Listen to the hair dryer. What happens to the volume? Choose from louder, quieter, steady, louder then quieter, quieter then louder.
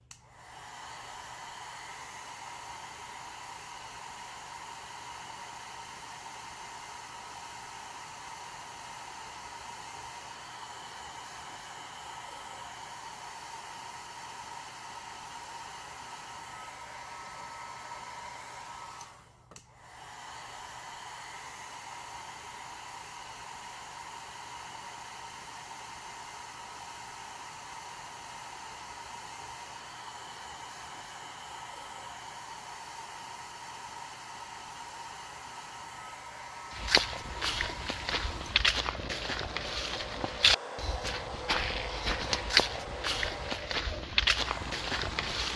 steady.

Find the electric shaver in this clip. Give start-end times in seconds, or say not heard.
not heard.